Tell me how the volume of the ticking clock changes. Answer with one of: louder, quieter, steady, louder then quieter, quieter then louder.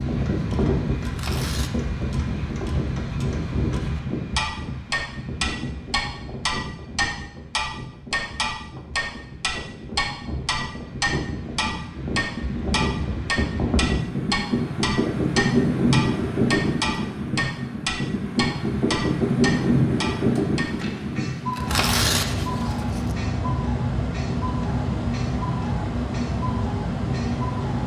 louder then quieter.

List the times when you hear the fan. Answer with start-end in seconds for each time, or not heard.
0.0-27.8.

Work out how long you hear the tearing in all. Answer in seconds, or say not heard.
2 s.